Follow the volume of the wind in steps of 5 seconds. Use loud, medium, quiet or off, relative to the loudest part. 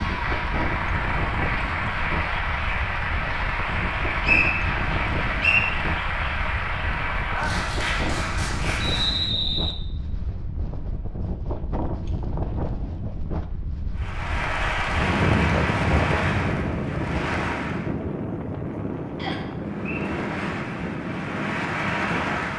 medium, medium, medium, loud, loud.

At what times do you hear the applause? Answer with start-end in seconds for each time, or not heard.
0.0-9.3, 13.9-17.9, 19.6-22.5.